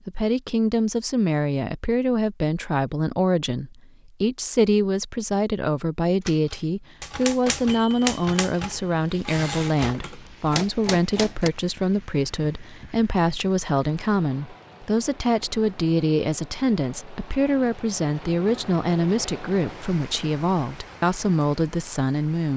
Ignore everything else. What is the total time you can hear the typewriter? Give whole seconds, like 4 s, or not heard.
5 s.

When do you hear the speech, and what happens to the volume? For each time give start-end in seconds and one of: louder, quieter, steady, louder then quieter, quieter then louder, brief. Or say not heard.
0.1-22.5 steady.